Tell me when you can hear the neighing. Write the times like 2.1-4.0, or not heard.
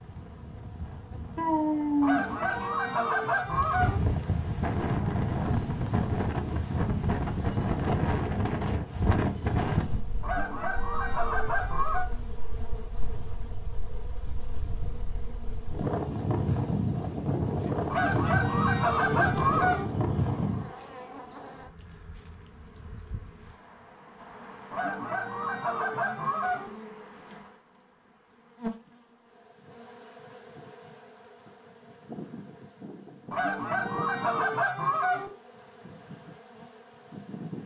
not heard.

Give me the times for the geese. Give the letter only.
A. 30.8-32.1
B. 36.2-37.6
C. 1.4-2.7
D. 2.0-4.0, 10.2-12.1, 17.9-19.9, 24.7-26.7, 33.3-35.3
D.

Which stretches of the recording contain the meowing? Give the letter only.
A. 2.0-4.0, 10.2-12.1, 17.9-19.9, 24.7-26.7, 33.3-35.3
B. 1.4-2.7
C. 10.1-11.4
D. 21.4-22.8
B.